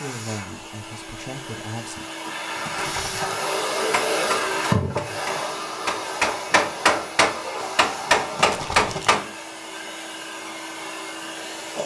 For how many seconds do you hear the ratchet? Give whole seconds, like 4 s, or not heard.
not heard.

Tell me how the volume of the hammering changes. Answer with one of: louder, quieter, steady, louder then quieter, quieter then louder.
louder.